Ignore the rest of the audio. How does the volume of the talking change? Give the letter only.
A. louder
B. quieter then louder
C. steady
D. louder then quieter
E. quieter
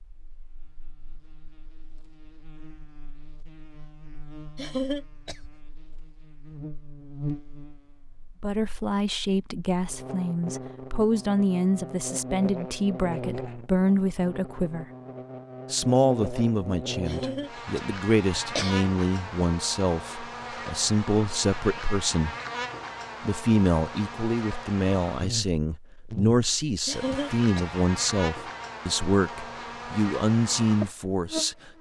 C.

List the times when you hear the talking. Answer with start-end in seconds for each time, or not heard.
8.4-14.8, 15.7-22.3, 23.2-31.7.